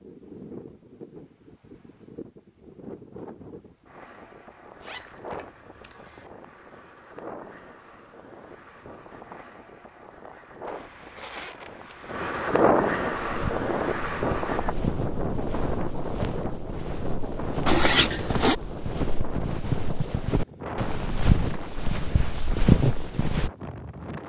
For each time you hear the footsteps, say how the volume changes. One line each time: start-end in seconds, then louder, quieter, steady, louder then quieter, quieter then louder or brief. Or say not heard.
13.2-23.5 louder.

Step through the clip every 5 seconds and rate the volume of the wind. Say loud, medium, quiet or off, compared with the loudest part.
quiet, quiet, loud, medium, medium.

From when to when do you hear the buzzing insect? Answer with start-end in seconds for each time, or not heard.
not heard.